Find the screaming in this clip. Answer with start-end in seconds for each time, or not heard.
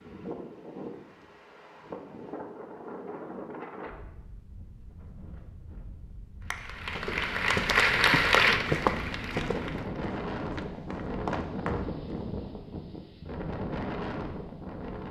not heard.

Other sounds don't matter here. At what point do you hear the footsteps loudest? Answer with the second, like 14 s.
9 s.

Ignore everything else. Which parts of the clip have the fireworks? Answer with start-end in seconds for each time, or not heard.
not heard.